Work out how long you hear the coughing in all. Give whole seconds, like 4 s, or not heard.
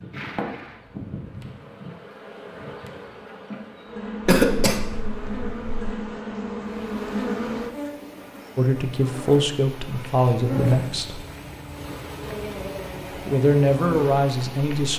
2 s.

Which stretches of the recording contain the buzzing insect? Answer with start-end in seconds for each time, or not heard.
0.0-14.9.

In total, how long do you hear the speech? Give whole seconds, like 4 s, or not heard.
4 s.